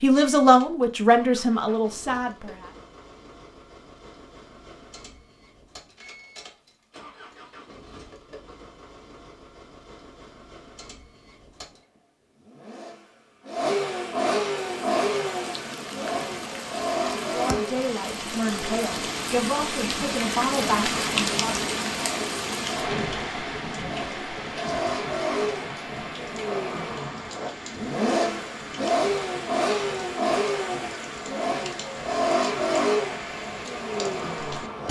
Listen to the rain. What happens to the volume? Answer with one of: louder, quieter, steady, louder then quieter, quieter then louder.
louder then quieter.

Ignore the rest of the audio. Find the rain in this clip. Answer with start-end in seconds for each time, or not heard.
14.6-34.8.